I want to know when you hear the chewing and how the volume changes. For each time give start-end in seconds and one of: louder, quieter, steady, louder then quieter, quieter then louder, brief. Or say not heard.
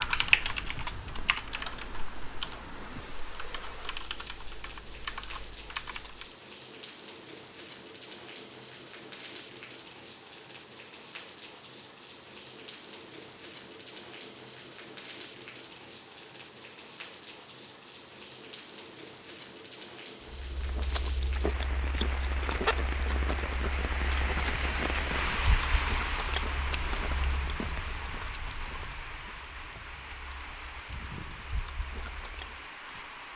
20.4-32.6 quieter.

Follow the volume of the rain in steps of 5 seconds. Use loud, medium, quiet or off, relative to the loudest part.
medium, medium, medium, medium, loud, loud, medium.